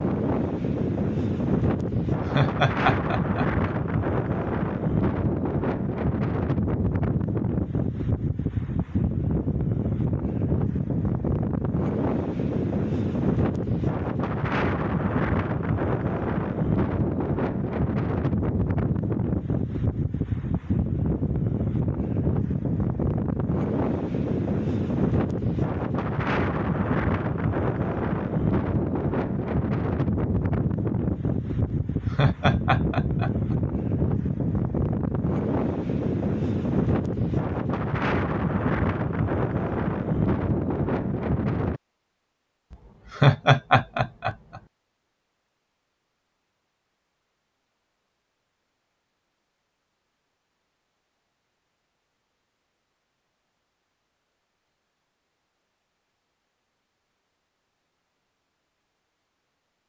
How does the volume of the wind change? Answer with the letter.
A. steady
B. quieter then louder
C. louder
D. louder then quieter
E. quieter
A.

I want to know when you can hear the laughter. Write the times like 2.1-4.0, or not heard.
2.2-3.7, 32.1-33.5, 43.1-44.6.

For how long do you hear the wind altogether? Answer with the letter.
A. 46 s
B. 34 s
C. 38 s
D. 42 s
D.